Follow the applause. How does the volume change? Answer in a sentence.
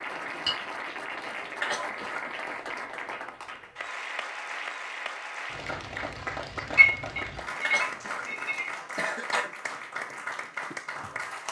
The volume of the applause stays about the same.